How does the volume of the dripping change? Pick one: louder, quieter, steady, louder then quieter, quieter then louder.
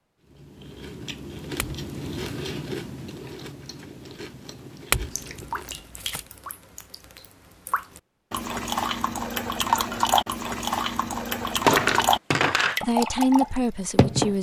louder.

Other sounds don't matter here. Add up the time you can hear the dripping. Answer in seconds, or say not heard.
9 s.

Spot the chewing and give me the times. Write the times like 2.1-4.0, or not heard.
0.2-5.9.